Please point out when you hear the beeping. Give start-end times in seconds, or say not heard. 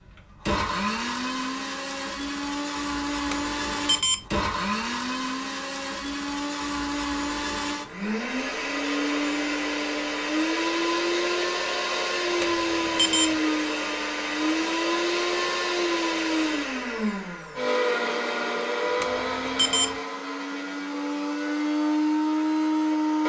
3.3-4.2, 12.4-13.3, 19.0-19.9.